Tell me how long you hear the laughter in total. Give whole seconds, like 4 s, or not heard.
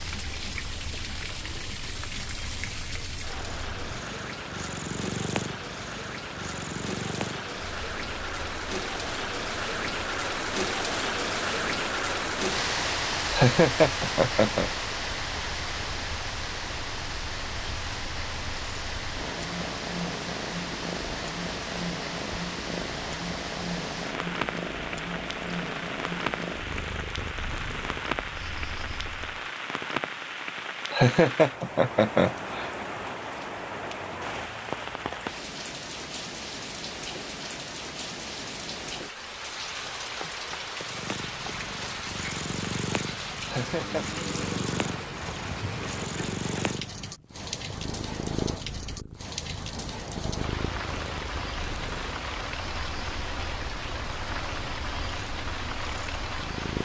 4 s.